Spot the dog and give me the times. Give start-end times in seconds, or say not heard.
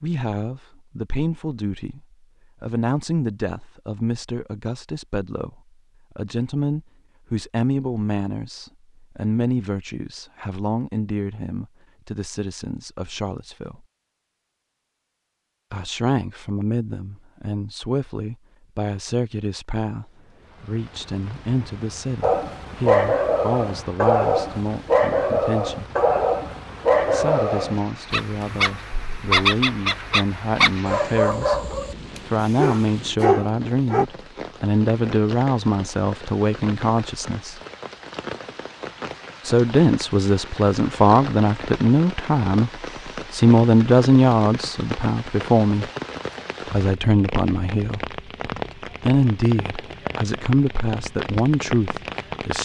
22.2-34.0.